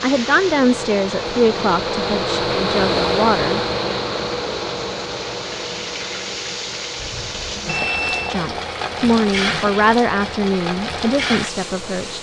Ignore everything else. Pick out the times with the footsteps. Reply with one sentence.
You can't hear the footsteps here.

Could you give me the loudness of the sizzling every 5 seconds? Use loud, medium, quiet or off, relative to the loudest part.
medium, loud, loud.